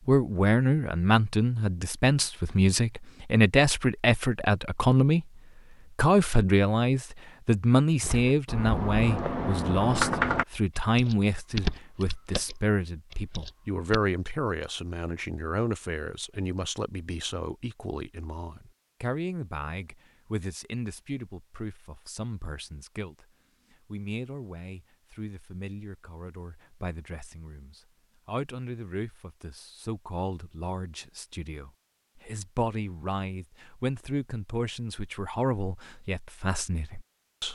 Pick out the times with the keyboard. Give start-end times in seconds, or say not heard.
8.0-14.0.